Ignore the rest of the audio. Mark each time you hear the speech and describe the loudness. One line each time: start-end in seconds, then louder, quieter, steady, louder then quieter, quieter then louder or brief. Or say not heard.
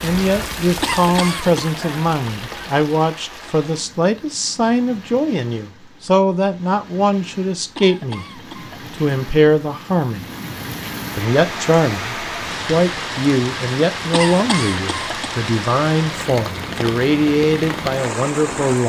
0.0-10.2 steady
11.2-18.8 steady.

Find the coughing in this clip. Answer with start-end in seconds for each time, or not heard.
0.8-1.8, 7.8-8.9, 14.1-15.3.